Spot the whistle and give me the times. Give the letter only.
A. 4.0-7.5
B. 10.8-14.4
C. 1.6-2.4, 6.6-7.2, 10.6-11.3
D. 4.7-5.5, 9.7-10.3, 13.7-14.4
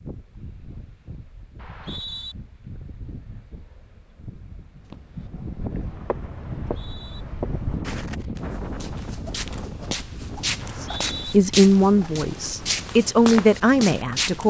C.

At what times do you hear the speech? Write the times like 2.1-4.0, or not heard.
10.8-14.4.